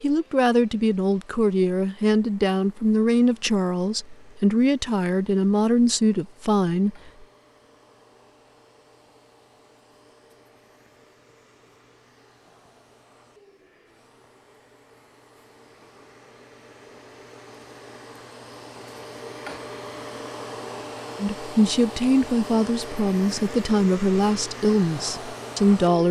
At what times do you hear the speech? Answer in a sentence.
The speech can be heard from 0.0 to 7.1 s and from 21.2 to 26.0 s.